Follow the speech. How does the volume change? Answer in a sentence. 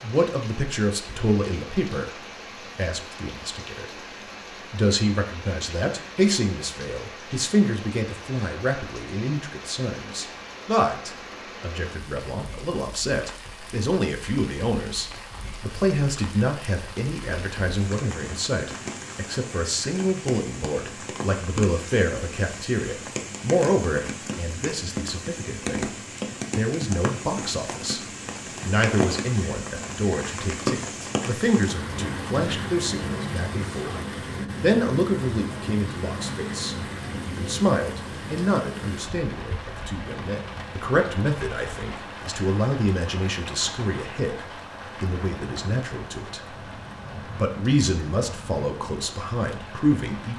The volume of the speech stays about the same.